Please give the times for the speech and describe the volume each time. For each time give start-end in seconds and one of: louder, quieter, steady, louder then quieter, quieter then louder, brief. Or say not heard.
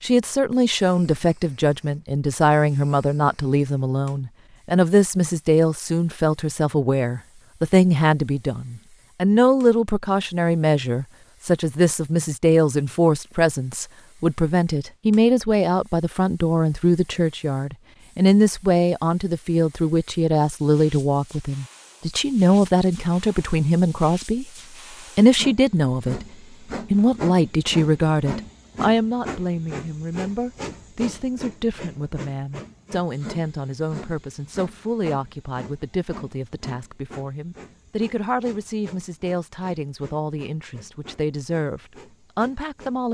0.0-24.4 steady
25.1-26.2 brief
26.9-43.0 quieter.